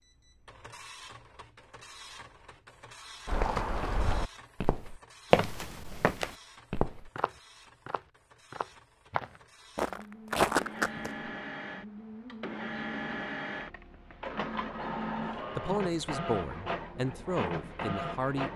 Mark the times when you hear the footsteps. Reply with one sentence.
The footsteps can be heard from 3.2 to 11.1 s.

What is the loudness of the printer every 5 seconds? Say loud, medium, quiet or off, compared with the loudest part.
quiet, quiet, loud, loud.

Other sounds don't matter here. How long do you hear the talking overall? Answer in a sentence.
The talking can be heard for 3 seconds in total.